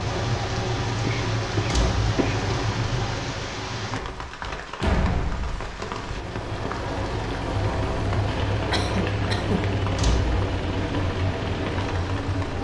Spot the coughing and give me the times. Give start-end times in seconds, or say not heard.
0.9-2.4, 8.7-9.8.